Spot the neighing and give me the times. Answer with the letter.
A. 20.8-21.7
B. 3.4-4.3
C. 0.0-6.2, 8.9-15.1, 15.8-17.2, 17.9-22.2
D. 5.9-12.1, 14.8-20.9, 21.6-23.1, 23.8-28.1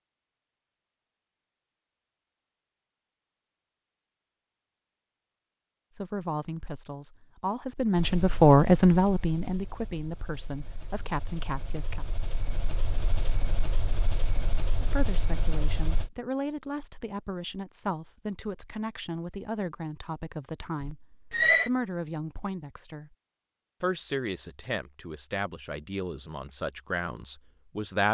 A.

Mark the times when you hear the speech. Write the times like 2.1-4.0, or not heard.
5.9-12.1, 14.8-20.9, 21.6-23.1, 23.8-28.1.